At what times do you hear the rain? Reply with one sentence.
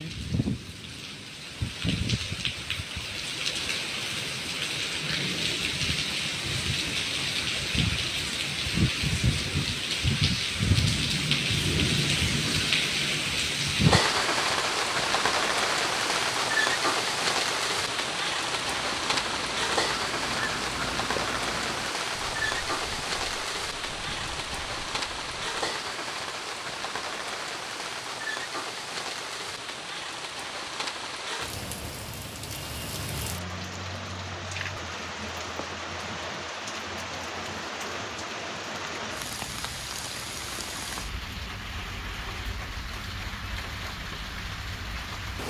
The rain can be heard from 0.0 to 45.4 s.